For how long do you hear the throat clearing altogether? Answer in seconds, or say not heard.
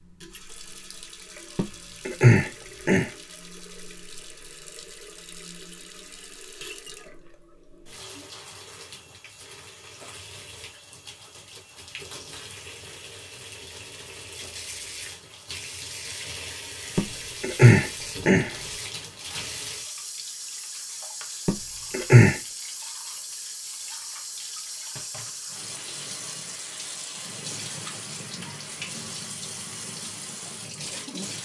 4 s.